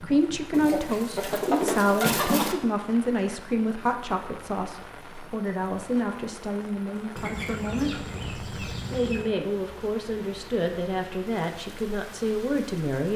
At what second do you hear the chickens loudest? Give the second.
2 s.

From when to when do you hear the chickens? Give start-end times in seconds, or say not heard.
0.5-2.5, 7.2-9.3.